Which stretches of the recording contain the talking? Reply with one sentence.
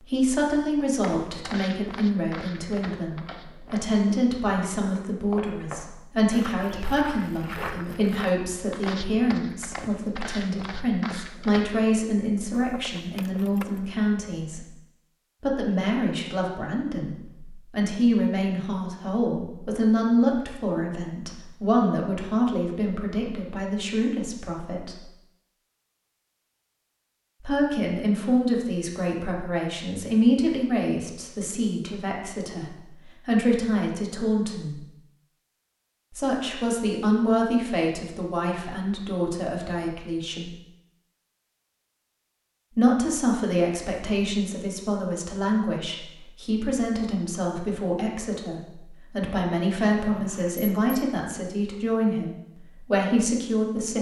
You can hear the talking from 0.0 to 14.7 s, from 15.4 to 24.9 s, from 27.4 to 34.9 s, from 36.1 to 40.5 s and from 42.8 to 53.9 s.